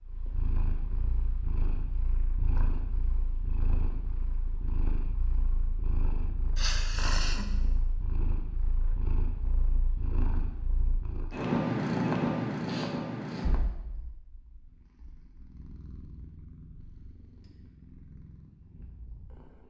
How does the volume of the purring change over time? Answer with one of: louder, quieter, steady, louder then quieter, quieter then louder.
louder then quieter.